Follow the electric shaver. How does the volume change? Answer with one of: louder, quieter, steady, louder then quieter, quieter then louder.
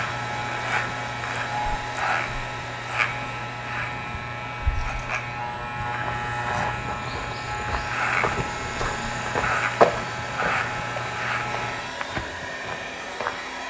steady.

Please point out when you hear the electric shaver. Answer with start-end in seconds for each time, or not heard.
0.0-11.9.